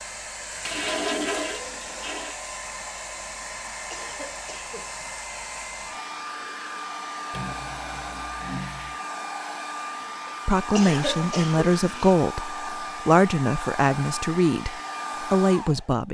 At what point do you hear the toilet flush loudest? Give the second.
1 s.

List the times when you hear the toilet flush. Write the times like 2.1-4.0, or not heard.
0.7-2.4, 7.3-9.0, 11.1-12.2.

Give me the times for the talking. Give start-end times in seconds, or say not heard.
10.4-16.0.